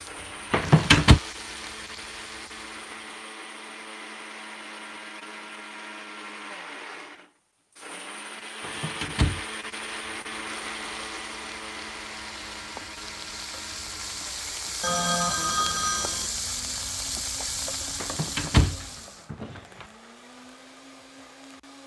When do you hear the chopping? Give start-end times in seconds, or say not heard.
not heard.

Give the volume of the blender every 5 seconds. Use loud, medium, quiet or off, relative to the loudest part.
loud, loud, loud, medium, medium.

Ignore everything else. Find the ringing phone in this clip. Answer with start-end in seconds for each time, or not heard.
14.8-16.3.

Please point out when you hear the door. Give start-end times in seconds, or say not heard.
0.5-1.2, 8.6-9.4, 18.0-19.9.